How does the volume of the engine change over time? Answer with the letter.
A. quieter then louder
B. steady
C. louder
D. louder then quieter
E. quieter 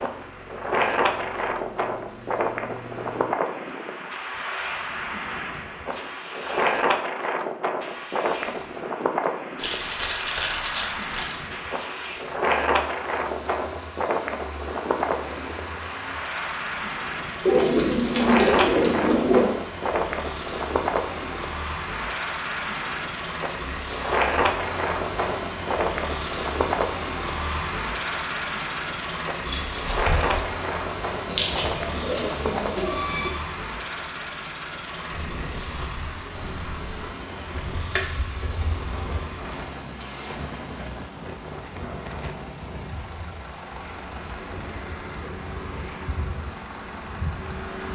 D.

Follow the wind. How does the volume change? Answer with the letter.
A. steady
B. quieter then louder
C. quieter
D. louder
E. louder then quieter
C.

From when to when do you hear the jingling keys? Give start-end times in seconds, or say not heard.
9.6-11.3, 29.4-30.4, 37.5-39.3.